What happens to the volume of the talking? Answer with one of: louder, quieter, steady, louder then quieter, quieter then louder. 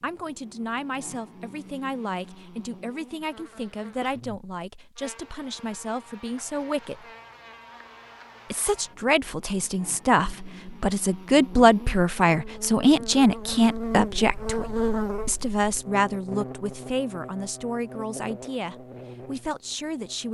louder then quieter.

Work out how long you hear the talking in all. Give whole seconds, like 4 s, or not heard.
19 s.